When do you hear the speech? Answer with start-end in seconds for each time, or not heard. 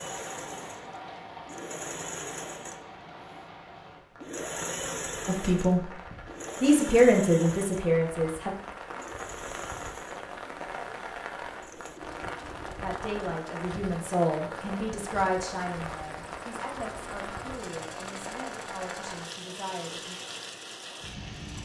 5.2-5.9, 6.6-8.5, 12.8-20.1.